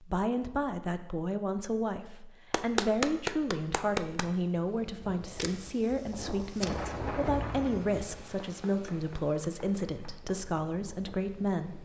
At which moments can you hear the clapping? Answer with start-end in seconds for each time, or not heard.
2.5-4.3, 8.4-10.4.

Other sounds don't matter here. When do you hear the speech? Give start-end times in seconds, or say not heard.
0.0-11.8.